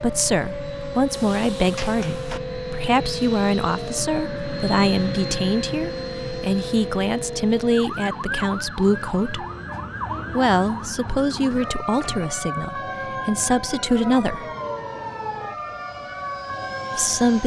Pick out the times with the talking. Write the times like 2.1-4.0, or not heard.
0.0-9.4, 10.3-14.4, 16.9-17.4.